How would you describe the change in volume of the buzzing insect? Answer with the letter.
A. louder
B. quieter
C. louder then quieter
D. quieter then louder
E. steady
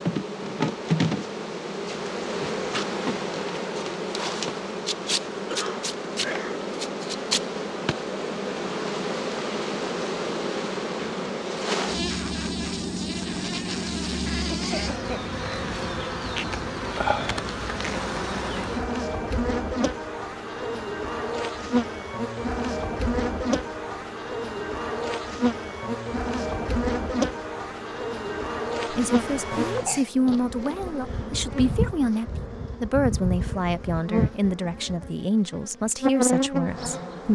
E.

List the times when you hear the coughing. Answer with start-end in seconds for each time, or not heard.
5.5-6.7, 14.5-15.3, 29.4-30.1.